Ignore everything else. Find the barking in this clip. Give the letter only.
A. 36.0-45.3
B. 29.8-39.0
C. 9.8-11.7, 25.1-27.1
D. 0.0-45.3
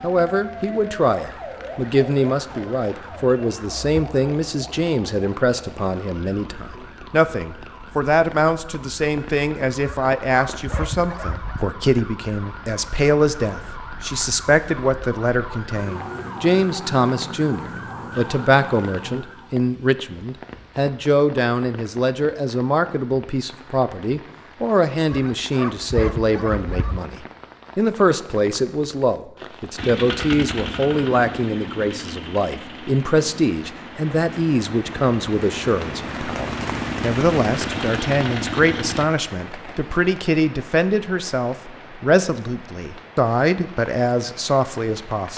C.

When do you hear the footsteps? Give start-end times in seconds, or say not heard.
not heard.